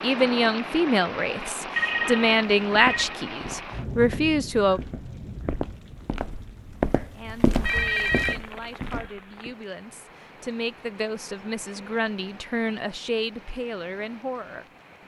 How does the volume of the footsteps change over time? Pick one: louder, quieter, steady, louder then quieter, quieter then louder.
louder then quieter.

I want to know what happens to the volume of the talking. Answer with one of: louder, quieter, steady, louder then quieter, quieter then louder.
quieter then louder.